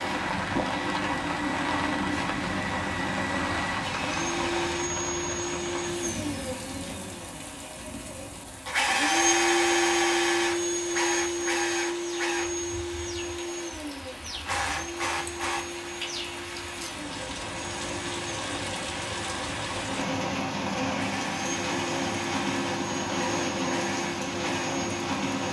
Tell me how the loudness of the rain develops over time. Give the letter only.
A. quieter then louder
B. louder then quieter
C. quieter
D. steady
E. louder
A.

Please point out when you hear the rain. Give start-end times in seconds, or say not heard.
0.0-25.4.